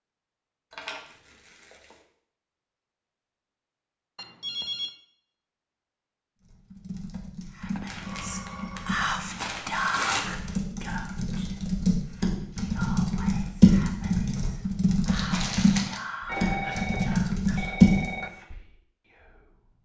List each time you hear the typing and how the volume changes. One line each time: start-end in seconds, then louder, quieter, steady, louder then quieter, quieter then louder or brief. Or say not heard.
6.4-18.2 louder.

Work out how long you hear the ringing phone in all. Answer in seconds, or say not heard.
4 s.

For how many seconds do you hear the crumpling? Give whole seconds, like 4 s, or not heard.
5 s.